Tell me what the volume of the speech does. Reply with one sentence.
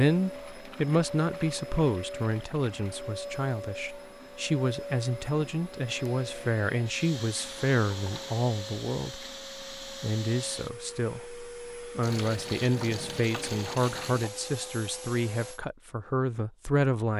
The loudness of the speech stays about the same.